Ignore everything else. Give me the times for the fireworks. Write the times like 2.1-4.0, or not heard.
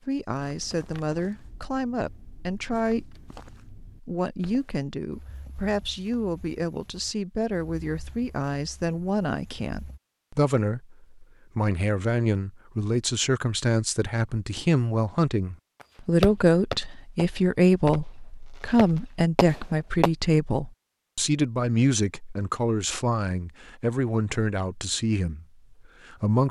16.2-20.1.